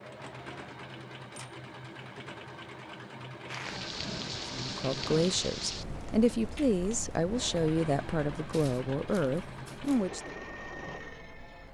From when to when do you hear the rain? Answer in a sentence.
You can hear the rain from 3.5 to 11.7 s.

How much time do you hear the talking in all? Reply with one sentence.
The talking can be heard for 6 seconds in total.